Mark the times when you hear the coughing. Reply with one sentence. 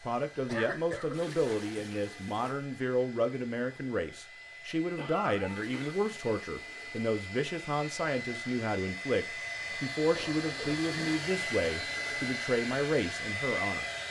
You can hear the coughing from 0.5 to 1.1 s, from 5.0 to 6.0 s and from 10.1 to 11.2 s.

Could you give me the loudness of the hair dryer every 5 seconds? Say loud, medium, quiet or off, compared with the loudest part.
quiet, medium, loud.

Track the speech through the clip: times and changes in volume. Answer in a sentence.
The speech can be heard from 0.0 to 13.8 s, at a steady volume.